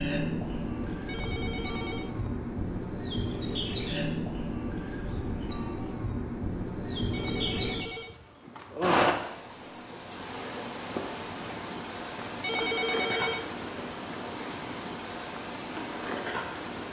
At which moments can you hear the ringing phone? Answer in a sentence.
The ringing phone can be heard from 0.9 to 2.2 s, from 7.0 to 8.2 s and from 12.3 to 13.5 s.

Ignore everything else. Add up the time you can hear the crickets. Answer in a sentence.
The crickets can be heard for 17 seconds in total.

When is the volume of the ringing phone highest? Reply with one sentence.
The volume of the ringing phone peaks at 13 seconds.